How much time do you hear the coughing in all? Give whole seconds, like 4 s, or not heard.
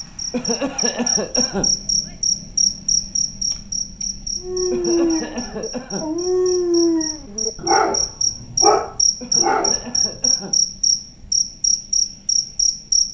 4 s.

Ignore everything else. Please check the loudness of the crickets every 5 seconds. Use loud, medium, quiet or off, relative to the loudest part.
medium, medium, loud.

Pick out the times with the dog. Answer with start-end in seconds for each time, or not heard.
4.4-10.3.